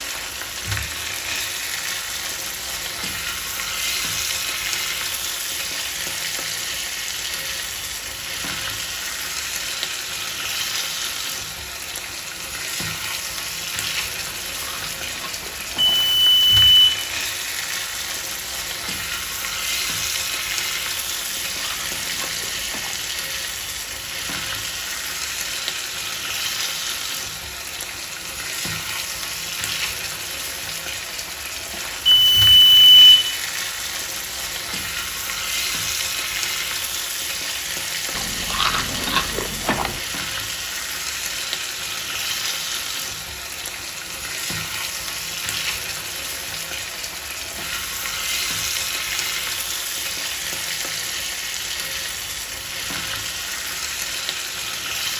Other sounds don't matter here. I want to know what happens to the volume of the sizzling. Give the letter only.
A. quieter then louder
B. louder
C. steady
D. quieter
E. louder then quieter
C.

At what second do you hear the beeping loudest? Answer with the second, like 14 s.
33 s.